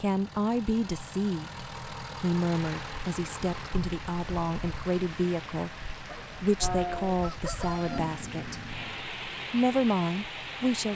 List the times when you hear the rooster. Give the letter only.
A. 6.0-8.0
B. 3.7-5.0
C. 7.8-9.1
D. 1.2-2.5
A.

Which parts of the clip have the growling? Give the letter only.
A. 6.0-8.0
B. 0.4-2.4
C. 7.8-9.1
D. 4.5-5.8
C.